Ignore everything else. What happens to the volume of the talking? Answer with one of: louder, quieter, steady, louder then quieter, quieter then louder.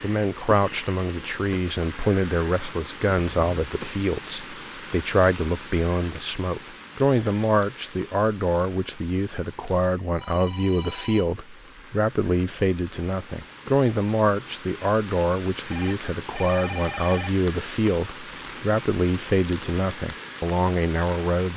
steady.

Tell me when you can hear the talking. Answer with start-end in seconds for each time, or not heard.
0.0-21.5.